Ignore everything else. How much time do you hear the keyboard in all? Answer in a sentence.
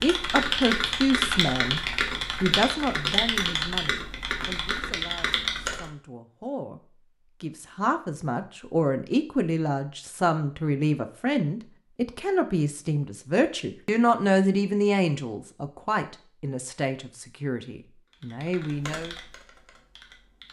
You can hear the keyboard for 8 seconds altogether.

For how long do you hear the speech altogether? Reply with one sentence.
You can hear the speech for 18 seconds altogether.